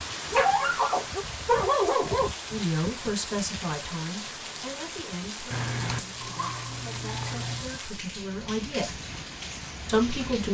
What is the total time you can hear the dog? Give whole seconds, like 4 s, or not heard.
4 s.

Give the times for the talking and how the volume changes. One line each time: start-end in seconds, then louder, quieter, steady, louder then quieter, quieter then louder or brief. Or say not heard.
2.5-9.0 quieter then louder
9.8-10.4 brief.